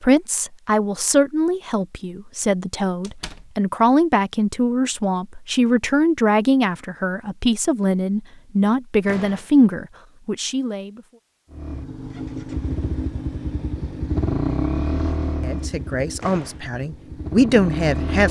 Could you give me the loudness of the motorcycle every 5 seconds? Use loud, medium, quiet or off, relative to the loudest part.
off, off, loud, loud.